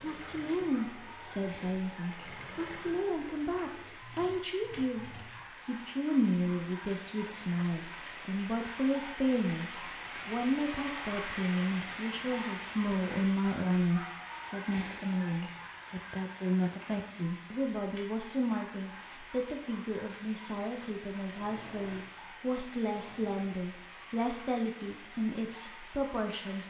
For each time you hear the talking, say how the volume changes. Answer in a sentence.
The talking can be heard from 0.0 to 26.6 s, at a steady volume.